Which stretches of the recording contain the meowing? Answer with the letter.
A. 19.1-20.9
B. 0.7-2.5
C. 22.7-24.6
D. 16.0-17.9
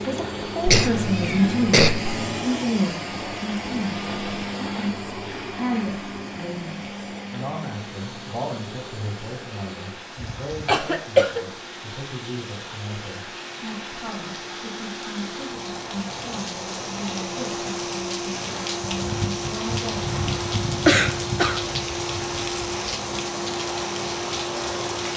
B.